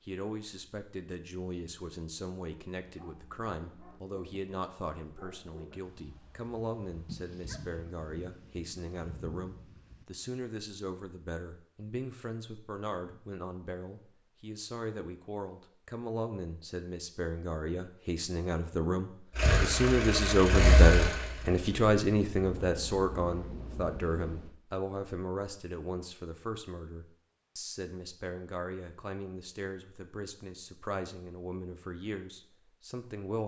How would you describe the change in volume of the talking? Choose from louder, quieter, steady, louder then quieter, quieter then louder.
louder then quieter.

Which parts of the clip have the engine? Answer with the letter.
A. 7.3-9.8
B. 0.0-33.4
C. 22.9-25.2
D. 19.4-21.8
D.